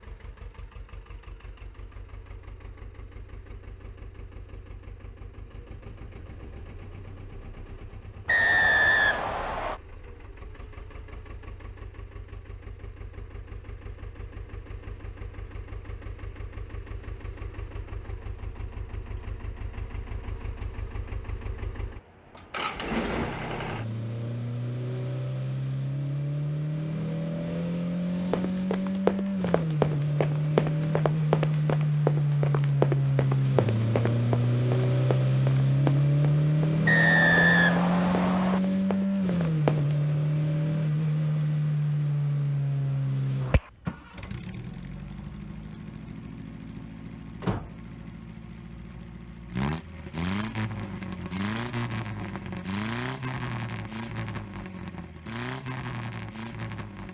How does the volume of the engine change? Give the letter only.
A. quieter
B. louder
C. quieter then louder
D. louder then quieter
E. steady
D.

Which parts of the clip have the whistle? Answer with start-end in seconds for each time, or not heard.
8.2-9.8, 36.9-38.6.